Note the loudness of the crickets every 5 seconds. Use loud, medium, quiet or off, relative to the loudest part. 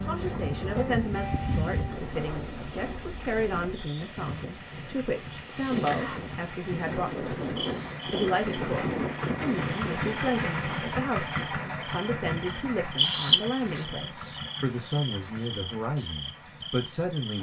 loud, medium, loud, medium.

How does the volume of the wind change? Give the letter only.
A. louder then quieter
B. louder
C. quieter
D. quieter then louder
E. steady
B.